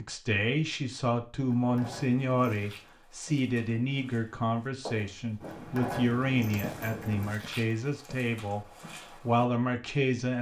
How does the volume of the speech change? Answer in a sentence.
The volume of the speech stays about the same.